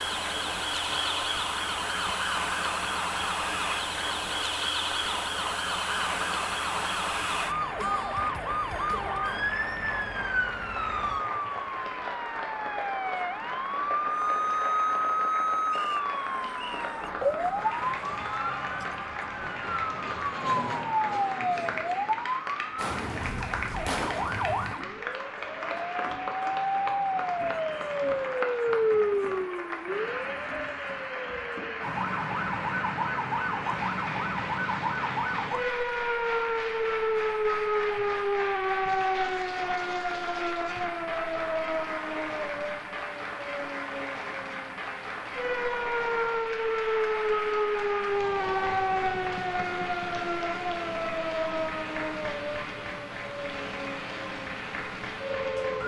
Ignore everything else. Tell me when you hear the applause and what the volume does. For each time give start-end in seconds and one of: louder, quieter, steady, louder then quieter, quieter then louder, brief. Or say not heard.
0.0-55.8 steady.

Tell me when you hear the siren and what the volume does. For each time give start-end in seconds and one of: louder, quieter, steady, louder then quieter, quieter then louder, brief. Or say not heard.
0.0-55.8 steady.